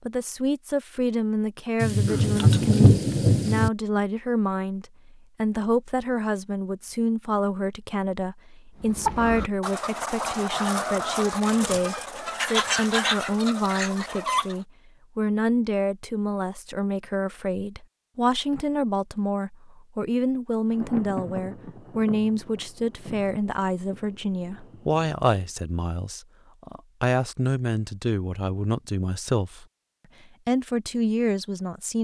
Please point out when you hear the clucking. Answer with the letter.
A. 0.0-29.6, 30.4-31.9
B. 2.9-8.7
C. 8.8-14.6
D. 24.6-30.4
C.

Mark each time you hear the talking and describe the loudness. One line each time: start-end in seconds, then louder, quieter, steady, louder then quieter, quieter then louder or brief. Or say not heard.
0.0-29.6 steady
30.4-31.9 brief.